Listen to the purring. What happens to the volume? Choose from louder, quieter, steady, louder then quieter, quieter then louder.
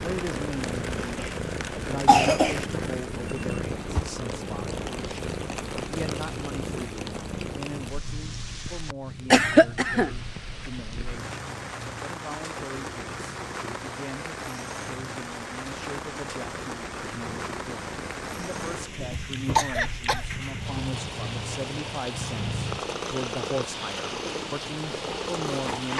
quieter then louder.